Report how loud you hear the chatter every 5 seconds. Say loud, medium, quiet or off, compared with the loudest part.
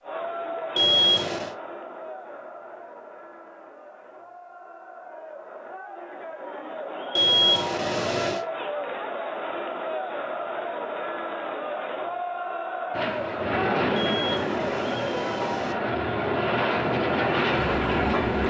medium, loud, loud, loud.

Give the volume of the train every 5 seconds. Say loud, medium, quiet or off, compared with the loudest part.
off, off, loud, loud.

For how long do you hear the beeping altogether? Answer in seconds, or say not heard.
4 s.